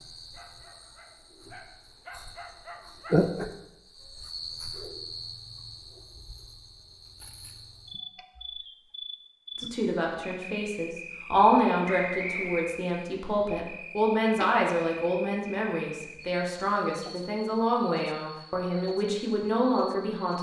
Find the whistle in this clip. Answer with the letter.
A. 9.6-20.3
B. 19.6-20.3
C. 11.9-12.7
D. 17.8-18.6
C.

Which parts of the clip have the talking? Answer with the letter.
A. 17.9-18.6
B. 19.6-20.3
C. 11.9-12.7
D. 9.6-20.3
D.